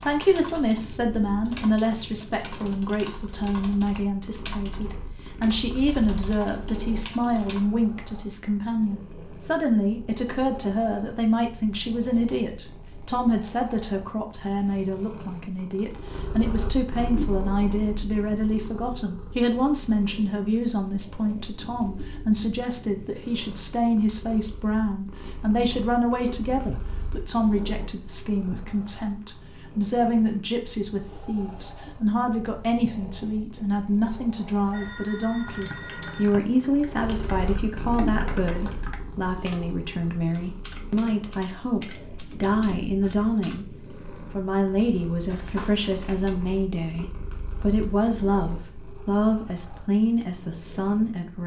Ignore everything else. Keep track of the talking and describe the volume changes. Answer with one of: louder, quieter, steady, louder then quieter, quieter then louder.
steady.